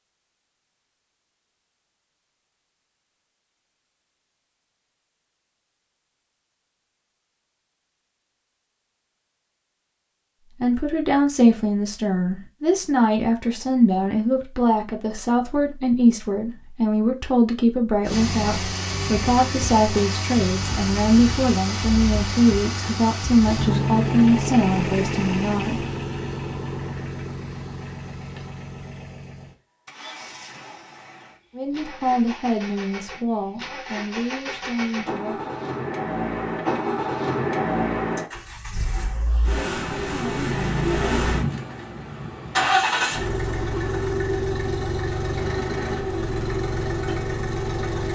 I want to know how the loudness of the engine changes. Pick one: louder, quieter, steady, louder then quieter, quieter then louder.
quieter then louder.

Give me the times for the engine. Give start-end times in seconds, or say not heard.
18.1-48.1.